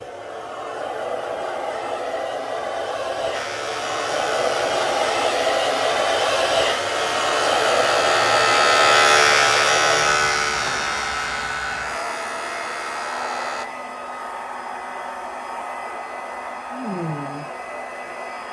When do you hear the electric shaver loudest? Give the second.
9 s.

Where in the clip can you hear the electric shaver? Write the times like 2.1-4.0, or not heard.
3.3-13.7.